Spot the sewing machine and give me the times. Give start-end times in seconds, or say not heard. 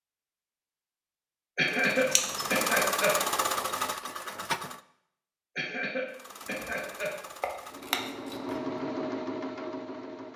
1.6-4.8, 6.0-10.3.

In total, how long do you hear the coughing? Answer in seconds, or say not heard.
3 s.